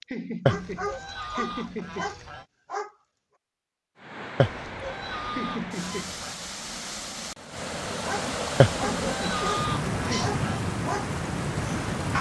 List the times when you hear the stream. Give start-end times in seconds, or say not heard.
4.0-12.1.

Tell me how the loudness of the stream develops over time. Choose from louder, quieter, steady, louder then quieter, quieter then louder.
louder.